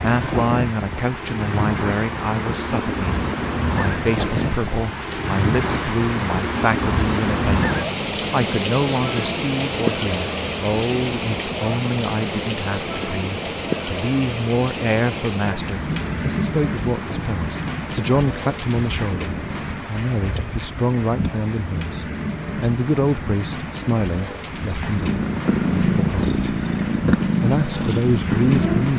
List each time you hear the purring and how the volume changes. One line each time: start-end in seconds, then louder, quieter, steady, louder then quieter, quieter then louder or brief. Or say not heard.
24.8-28.9 steady.